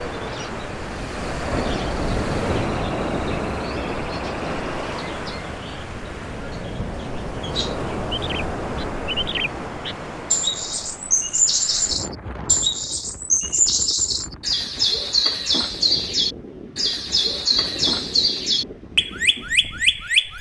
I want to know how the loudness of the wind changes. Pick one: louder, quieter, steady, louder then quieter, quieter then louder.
quieter.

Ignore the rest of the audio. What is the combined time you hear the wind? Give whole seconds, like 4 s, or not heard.
20 s.